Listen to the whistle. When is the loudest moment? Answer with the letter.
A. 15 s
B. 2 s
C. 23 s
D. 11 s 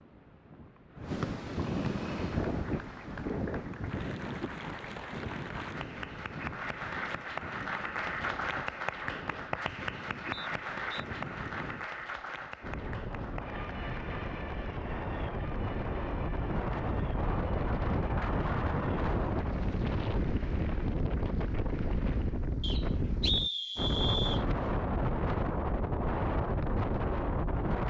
C.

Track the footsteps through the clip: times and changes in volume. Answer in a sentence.
You can't hear the footsteps here.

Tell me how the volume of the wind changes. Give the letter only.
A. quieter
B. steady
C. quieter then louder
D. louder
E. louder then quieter
C.